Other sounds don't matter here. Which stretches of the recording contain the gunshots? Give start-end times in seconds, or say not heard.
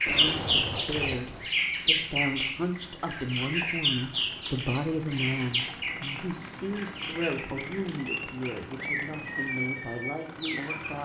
0.1-1.5.